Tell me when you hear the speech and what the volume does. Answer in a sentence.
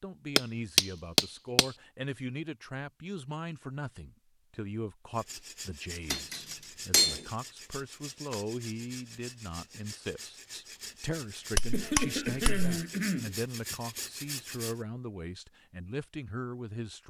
You can hear the speech from 0.0 to 17.0 s, at a steady volume.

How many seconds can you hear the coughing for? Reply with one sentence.
The coughing can be heard for 2 seconds in total.